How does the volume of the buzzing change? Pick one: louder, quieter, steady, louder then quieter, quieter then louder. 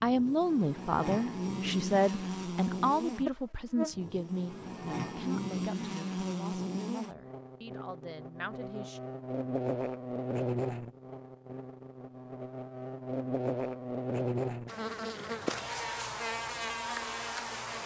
steady.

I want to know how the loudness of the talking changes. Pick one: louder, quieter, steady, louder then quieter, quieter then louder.
quieter.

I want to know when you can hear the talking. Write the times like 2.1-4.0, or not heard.
0.0-9.0.